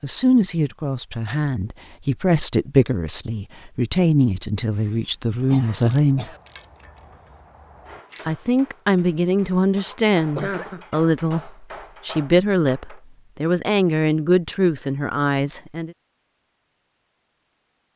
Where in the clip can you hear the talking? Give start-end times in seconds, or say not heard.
0.0-6.2, 8.2-15.9.